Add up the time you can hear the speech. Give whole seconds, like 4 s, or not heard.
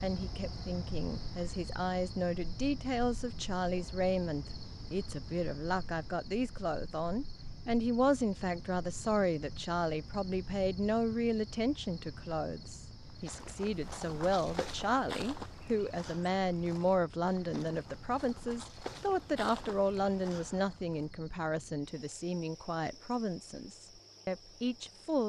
25 s.